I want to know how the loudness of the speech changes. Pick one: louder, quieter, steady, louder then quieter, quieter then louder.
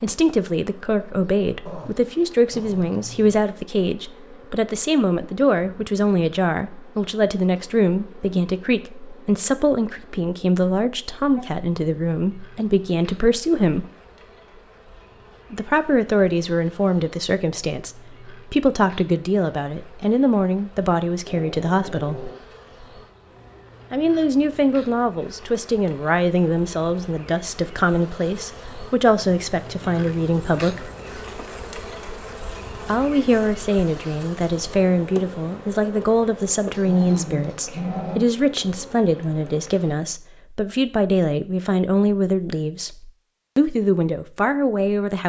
steady.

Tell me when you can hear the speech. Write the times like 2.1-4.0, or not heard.
0.0-13.8, 15.5-22.3, 23.9-30.9, 32.9-45.2.